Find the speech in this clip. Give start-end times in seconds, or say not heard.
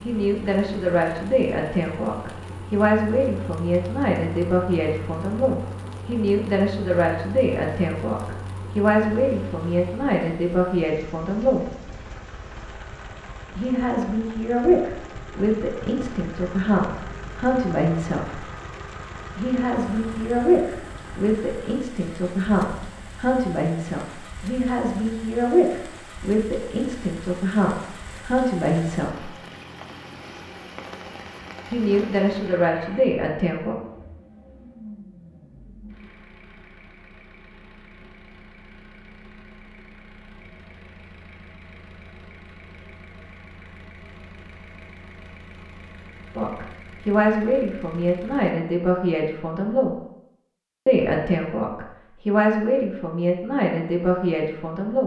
0.0-11.7, 13.6-18.4, 19.4-29.4, 31.7-33.8, 46.4-50.0, 50.9-55.0.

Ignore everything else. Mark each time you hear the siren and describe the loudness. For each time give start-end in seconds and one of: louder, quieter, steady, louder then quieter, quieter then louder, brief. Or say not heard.
not heard.